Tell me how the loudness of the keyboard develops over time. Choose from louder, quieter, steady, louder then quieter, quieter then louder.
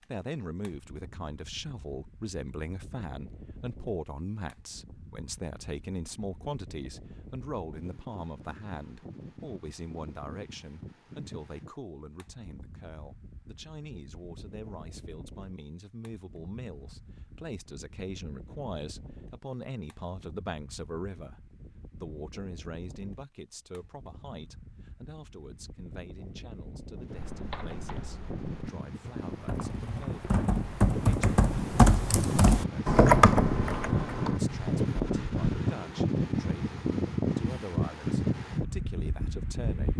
louder.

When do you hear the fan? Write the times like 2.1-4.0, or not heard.
0.0-39.9.